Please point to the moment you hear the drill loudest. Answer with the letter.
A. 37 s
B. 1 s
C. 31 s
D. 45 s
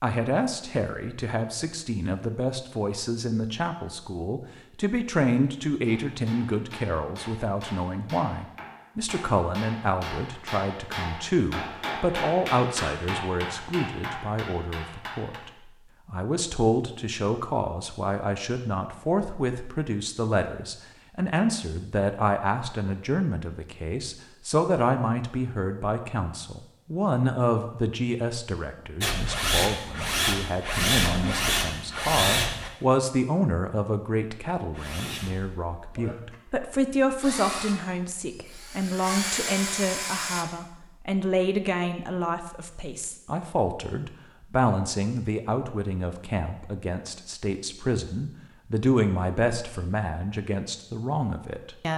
C.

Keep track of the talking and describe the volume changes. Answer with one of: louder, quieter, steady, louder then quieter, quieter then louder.
steady.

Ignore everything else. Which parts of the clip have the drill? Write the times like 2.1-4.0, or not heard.
29.0-32.7, 34.7-40.5.